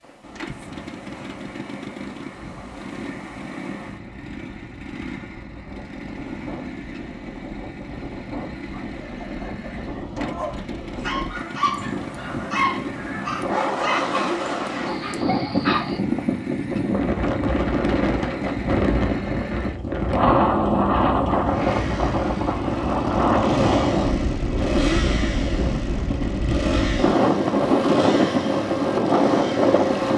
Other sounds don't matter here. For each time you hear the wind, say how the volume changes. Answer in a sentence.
The wind can be heard from 0.0 to 30.1 s, getting louder.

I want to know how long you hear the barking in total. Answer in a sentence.
You can hear the barking for 7 seconds altogether.